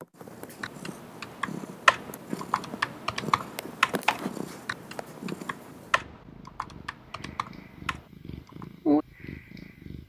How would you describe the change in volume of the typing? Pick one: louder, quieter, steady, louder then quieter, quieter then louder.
quieter.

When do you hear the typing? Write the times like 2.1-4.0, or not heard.
0.6-8.7.